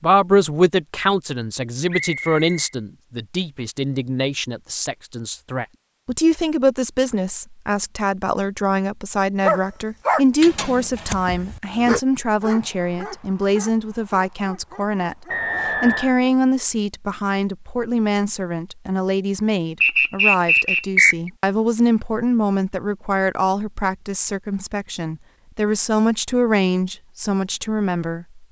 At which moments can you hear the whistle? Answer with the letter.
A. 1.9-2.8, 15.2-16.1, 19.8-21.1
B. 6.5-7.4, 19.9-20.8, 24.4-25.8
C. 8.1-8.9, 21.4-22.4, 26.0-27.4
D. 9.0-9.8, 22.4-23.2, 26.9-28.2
A.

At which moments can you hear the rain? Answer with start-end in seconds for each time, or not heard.
not heard.